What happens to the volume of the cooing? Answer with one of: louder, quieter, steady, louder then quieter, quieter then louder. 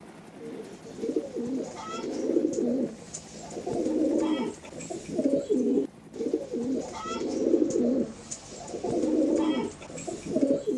steady.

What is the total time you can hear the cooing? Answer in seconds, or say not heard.
10 s.